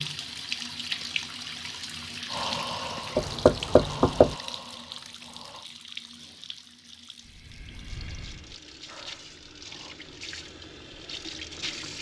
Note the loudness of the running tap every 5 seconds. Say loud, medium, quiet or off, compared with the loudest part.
loud, medium, loud.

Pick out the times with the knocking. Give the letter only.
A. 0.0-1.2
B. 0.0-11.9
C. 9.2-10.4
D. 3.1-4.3
D.